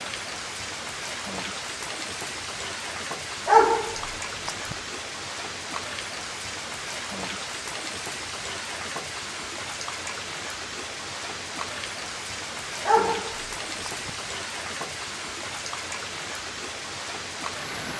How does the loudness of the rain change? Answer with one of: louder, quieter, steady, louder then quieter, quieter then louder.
steady.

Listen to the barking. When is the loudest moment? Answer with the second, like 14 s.
4 s.